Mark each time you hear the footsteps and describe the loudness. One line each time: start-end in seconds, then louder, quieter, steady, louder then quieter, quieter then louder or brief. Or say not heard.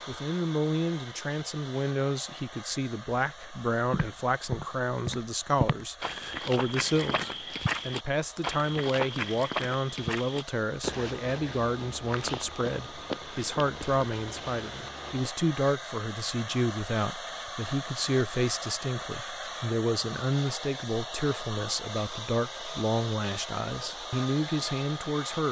3.9-15.3 quieter.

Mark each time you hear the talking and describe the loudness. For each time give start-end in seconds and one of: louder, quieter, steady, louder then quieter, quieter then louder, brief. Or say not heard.
0.1-25.4 steady.